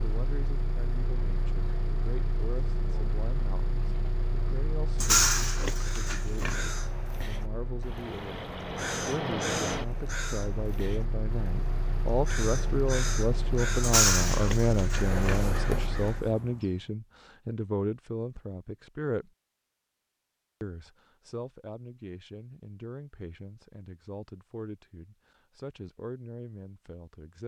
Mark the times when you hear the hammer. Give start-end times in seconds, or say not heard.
not heard.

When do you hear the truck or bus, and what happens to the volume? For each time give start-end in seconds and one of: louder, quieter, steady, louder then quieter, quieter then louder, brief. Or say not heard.
0.0-16.1 steady.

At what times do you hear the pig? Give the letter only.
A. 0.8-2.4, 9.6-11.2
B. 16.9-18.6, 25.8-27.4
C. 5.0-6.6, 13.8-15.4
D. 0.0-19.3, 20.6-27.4
C.